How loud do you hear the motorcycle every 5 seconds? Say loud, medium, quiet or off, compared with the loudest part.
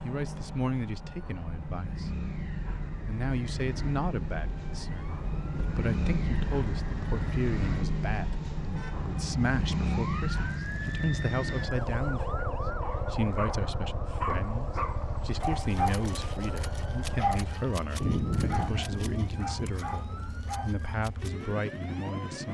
medium, loud, loud, medium, medium.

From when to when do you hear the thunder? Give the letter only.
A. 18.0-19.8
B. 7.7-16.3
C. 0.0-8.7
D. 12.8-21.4
A.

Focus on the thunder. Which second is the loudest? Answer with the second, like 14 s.
18 s.